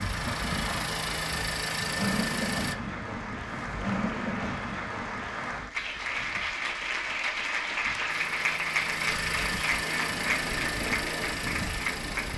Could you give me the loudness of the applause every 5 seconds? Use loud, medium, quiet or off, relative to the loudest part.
medium, loud, loud.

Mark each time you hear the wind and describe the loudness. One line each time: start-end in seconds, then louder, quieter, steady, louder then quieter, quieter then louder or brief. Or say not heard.
0.0-12.3 quieter then louder.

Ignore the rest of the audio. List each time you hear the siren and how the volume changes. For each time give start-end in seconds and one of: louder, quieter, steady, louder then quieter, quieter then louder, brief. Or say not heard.
not heard.